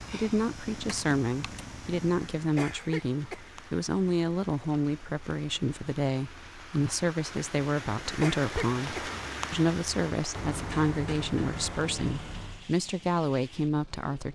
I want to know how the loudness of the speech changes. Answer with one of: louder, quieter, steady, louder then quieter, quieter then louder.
steady.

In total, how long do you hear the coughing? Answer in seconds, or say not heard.
2 s.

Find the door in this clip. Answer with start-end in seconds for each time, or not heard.
0.8-1.6, 10.3-12.7.